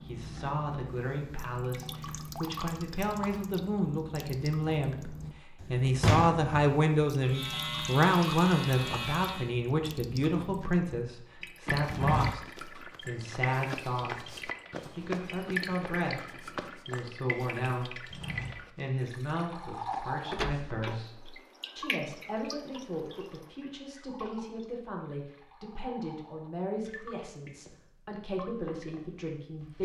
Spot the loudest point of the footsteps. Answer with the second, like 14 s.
12 s.